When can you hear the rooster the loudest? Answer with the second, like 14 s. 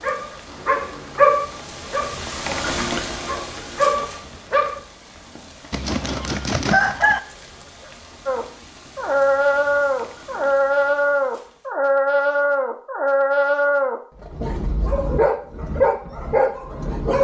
7 s.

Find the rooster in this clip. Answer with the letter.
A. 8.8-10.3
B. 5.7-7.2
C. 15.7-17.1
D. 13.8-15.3
B.